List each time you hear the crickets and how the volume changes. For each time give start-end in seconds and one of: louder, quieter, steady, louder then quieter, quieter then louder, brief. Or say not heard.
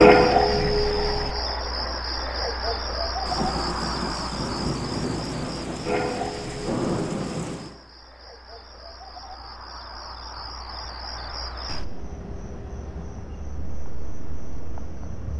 0.0-15.3 quieter.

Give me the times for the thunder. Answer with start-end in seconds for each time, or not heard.
3.2-7.8.